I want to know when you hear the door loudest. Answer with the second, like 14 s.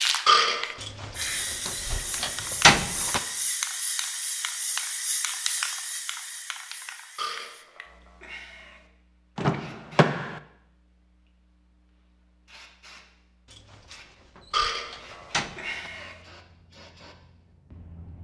3 s.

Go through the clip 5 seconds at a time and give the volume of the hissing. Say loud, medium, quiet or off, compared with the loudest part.
loud, medium, quiet, quiet.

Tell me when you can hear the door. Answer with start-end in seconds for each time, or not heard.
0.8-3.2, 9.3-10.4, 13.4-15.9.